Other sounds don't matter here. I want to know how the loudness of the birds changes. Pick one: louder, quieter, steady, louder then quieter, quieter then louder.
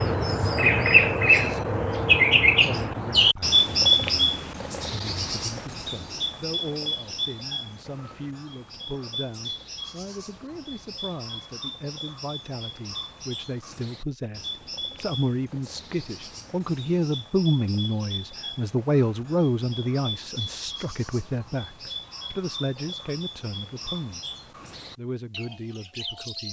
quieter.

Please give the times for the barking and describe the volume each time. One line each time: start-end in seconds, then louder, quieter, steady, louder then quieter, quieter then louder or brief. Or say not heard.
not heard.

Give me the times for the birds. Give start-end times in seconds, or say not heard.
0.0-26.4.